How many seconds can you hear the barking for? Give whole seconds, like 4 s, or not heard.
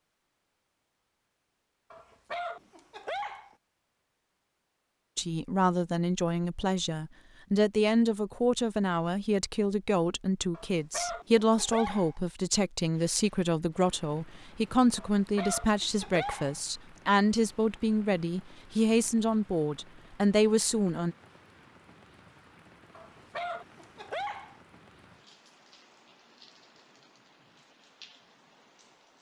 7 s.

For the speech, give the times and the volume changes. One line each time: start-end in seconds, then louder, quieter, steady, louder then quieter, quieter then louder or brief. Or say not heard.
5.2-21.1 steady.